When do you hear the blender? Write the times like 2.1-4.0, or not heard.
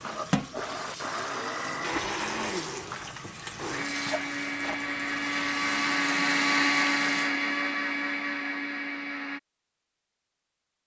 0.0-9.4.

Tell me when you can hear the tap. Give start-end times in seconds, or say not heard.
0.0-7.3.